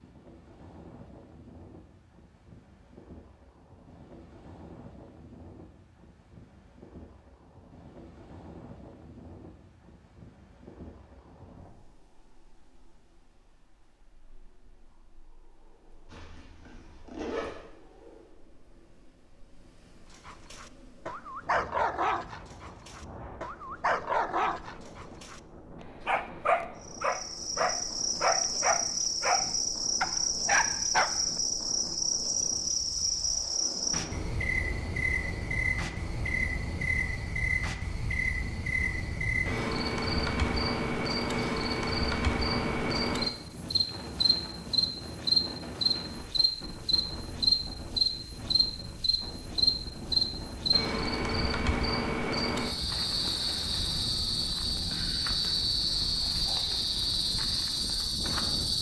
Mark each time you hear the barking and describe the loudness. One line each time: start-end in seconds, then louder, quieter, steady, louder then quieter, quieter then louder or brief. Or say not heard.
20.2-31.4 steady.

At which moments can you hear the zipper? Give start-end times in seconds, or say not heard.
16.1-17.6.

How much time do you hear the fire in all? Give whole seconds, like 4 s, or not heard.
not heard.